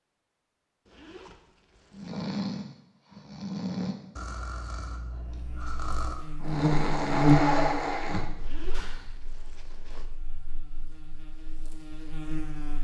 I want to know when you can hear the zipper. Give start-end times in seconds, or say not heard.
0.8-2.2, 8.3-10.1.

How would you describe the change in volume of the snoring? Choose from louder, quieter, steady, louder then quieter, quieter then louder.
quieter then louder.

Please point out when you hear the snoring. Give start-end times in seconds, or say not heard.
1.9-9.1.